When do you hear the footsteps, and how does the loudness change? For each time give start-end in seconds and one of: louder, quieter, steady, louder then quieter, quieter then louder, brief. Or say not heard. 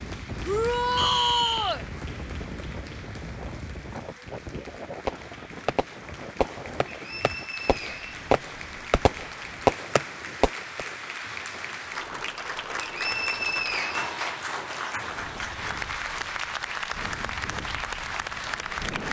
not heard.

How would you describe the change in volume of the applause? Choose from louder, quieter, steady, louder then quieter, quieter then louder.
louder.